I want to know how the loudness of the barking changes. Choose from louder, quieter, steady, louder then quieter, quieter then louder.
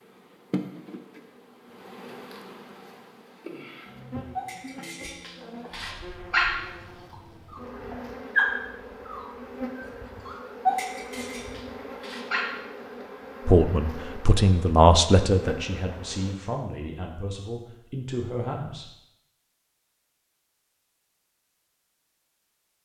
louder then quieter.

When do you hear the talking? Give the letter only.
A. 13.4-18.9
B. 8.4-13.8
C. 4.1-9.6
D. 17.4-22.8
A.